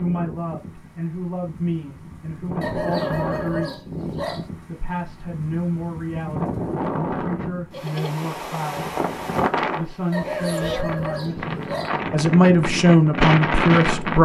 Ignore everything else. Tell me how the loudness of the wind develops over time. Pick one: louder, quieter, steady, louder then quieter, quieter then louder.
louder.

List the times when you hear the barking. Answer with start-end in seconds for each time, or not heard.
2.6-4.5, 10.1-12.0.